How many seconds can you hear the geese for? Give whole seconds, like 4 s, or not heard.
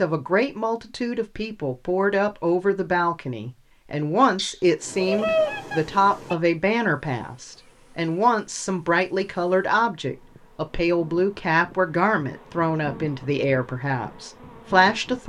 2 s.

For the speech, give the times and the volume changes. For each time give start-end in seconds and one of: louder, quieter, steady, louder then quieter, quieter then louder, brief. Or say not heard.
0.0-15.2 steady.